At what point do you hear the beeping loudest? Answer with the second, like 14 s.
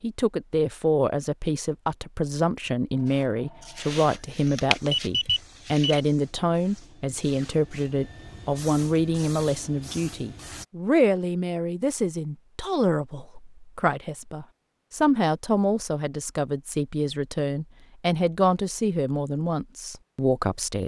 5 s.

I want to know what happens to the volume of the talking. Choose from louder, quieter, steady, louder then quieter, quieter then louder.
steady.